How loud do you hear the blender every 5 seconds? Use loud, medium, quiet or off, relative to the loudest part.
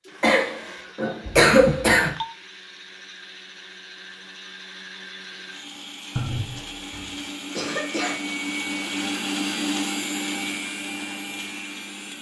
quiet, loud, loud.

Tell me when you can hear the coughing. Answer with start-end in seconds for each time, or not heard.
0.2-2.1, 6.9-8.4.